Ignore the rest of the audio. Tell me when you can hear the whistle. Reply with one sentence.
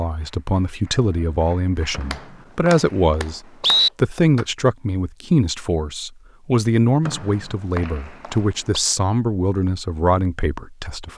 The whistle can be heard from 1.9 to 3.9 s and from 7.0 to 8.8 s.